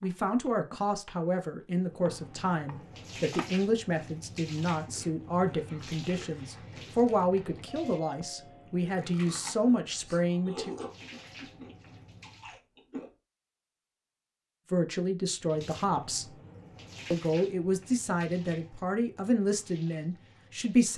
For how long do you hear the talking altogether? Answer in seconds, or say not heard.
16 s.